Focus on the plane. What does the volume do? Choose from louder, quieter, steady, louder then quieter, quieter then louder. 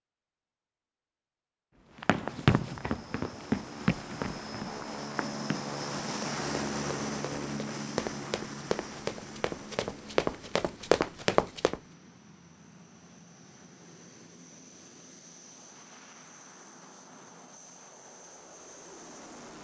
quieter.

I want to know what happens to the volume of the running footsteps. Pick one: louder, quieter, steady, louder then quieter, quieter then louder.
quieter then louder.